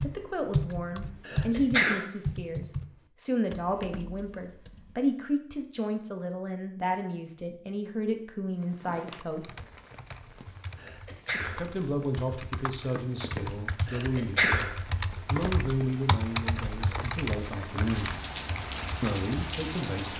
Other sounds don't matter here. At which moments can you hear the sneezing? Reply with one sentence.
The sneezing can be heard from 1.2 to 2.0 s, from 10.8 to 11.7 s and from 13.8 to 14.8 s.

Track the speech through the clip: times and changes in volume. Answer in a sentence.
You can hear the speech from 0.0 to 9.5 s, at a steady volume; briefly from 11.6 to 14.5 s; briefly from 15.3 to 18.1 s; and briefly from 19.0 to 20.1 s.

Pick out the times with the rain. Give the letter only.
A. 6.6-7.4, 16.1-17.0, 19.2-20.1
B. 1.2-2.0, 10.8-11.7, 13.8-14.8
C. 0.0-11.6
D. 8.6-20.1
D.